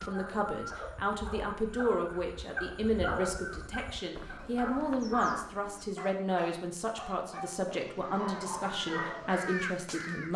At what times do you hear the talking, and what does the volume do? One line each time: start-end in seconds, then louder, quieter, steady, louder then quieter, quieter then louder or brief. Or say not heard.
0.1-10.3 steady.